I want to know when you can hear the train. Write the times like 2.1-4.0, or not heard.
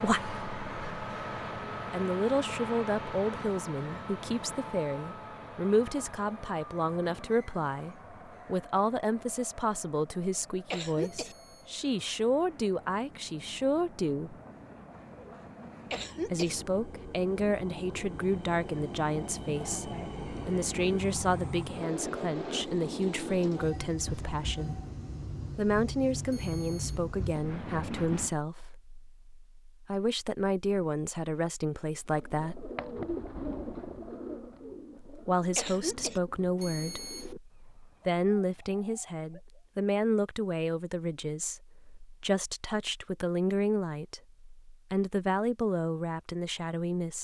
0.0-28.4.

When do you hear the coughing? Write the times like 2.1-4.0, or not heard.
10.7-11.3, 15.9-16.6, 35.5-36.2.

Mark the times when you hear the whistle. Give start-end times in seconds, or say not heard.
not heard.